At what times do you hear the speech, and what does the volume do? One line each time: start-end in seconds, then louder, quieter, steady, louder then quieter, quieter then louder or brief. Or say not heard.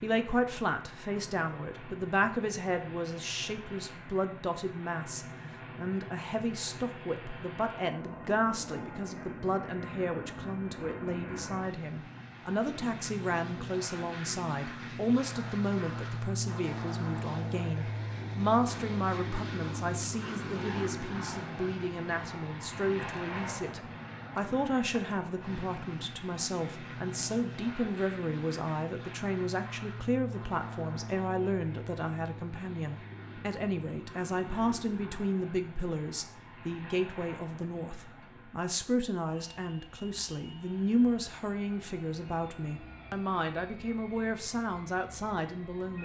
0.0-46.0 steady.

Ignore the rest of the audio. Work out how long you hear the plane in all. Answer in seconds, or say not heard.
46 s.